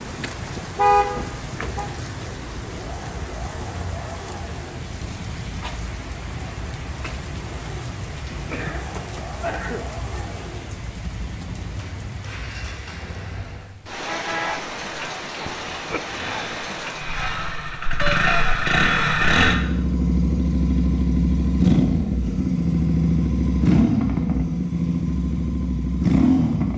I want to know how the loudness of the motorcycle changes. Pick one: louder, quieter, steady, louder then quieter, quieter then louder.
louder.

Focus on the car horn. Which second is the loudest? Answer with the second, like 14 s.
1 s.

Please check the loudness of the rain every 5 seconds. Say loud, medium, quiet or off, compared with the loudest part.
loud, loud, loud, loud, off, off.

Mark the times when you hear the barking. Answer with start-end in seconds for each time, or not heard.
not heard.